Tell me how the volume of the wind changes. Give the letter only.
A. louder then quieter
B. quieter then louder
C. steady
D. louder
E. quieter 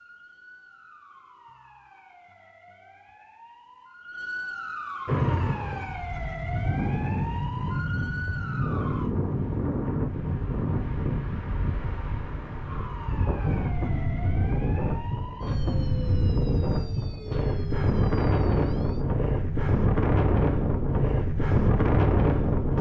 D.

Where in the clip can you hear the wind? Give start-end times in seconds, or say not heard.
5.0-22.7.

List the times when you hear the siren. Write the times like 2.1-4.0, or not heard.
0.0-9.2, 12.7-19.1.